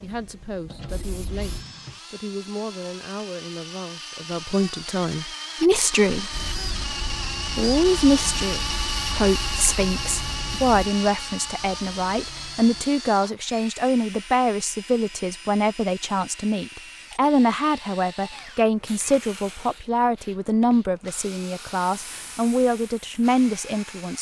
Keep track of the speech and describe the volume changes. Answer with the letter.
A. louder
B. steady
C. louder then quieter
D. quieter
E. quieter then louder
A.